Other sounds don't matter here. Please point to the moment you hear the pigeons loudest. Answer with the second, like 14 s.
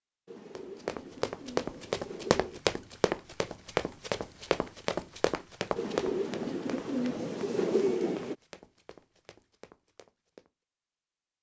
8 s.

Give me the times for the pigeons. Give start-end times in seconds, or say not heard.
0.2-2.6, 5.8-8.3.